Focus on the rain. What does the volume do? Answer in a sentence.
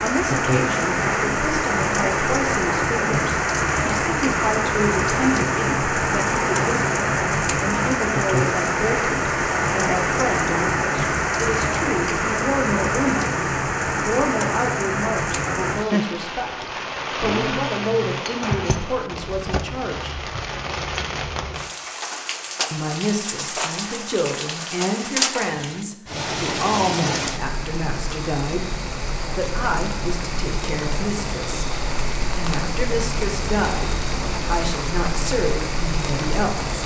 The loudness of the rain goes down.